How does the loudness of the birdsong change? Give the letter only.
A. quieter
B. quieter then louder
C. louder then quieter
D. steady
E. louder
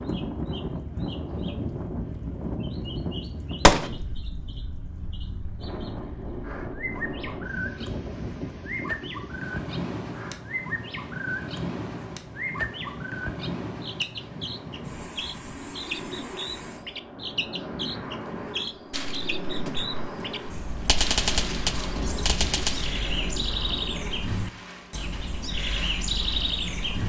E.